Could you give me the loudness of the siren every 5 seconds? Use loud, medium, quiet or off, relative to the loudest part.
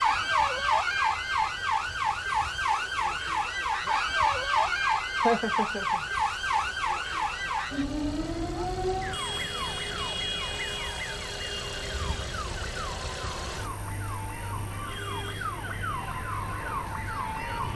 loud, loud, medium, medium.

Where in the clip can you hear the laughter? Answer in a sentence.
The laughter can be heard from 5.2 to 6.0 s.